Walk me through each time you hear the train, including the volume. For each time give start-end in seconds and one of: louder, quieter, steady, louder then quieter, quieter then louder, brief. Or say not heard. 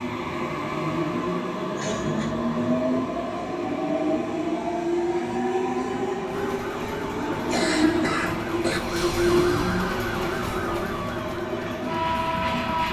0.0-12.8 steady.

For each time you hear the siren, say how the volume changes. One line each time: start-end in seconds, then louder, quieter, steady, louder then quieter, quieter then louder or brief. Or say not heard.
6.2-12.8 louder then quieter.